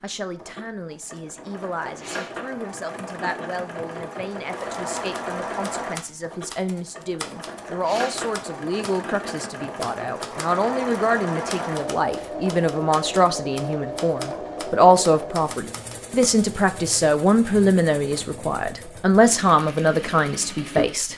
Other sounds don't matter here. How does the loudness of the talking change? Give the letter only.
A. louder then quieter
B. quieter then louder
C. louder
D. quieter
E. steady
C.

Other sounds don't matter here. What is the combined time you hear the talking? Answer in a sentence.
The talking can be heard for 21 seconds in total.